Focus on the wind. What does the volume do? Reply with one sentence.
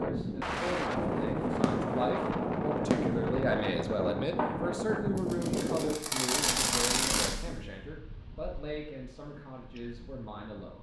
The loudness of the wind goes down.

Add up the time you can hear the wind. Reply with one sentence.
You can hear the wind for 11 seconds altogether.